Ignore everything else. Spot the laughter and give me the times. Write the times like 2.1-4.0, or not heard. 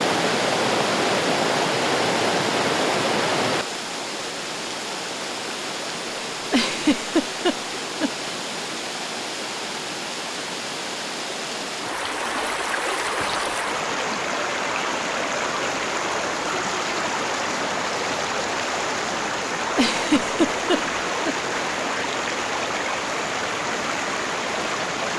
6.5-8.1, 19.8-21.4.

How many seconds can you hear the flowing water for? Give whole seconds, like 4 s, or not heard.
25 s.